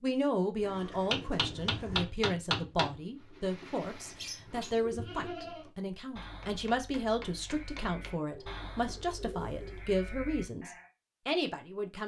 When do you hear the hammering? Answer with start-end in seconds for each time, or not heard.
1.1-3.0, 6.2-8.2.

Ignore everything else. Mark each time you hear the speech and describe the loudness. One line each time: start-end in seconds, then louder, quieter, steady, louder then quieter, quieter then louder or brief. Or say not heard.
0.0-12.0 steady.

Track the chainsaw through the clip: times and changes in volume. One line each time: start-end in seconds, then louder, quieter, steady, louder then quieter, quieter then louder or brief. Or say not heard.
not heard.